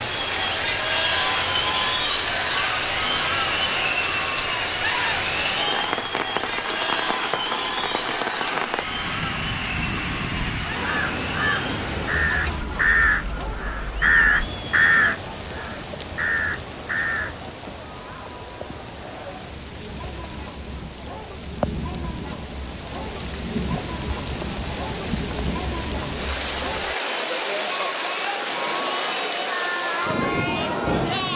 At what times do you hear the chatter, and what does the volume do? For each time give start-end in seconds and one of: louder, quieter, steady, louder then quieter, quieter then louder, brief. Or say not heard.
0.0-31.3 quieter then louder.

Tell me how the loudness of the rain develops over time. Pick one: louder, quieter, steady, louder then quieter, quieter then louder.
quieter then louder.